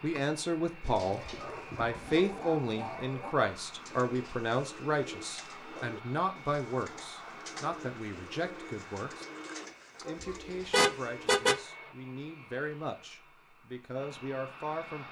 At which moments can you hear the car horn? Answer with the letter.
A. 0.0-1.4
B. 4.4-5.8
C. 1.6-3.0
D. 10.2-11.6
D.